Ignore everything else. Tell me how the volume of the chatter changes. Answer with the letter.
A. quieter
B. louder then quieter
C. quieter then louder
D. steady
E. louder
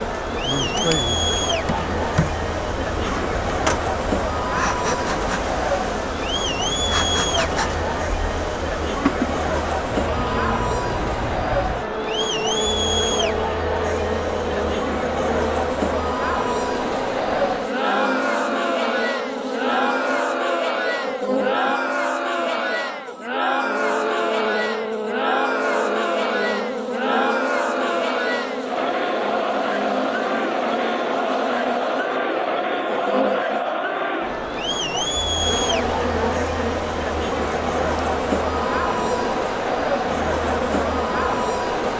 D.